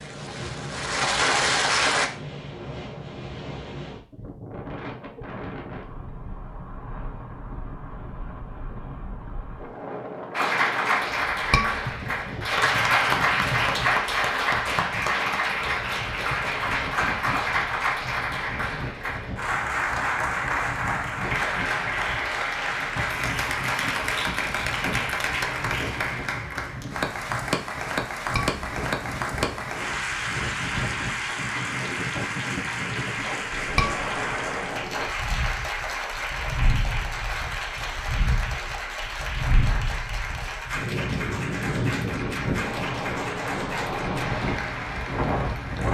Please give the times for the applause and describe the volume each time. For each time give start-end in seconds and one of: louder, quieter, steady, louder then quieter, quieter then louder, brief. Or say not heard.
0.0-2.1 brief
10.3-45.8 quieter.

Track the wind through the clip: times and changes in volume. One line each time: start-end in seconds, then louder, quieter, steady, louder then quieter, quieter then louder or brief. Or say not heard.
0.0-45.8 louder.